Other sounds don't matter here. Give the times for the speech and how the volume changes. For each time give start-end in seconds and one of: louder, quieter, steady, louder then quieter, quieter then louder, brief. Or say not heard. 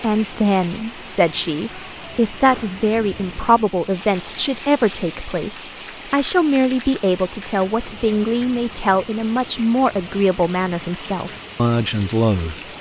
0.0-12.6 steady.